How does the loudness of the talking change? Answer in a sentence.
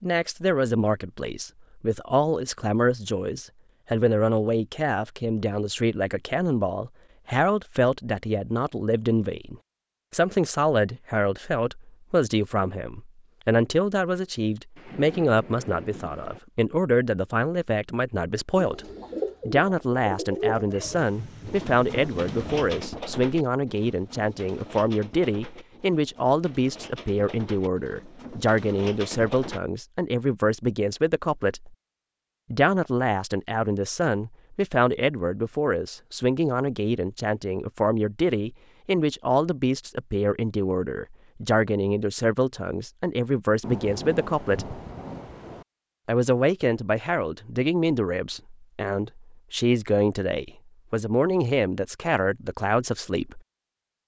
The volume of the talking stays about the same.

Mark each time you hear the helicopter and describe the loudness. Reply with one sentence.
The helicopter can't be heard in this clip.